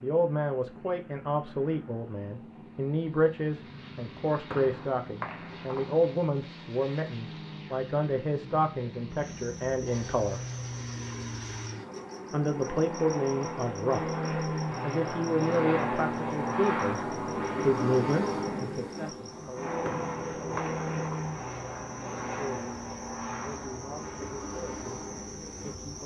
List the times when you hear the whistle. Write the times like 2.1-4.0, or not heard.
4.5-6.1, 19.8-21.4.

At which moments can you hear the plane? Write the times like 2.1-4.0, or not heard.
0.0-26.0.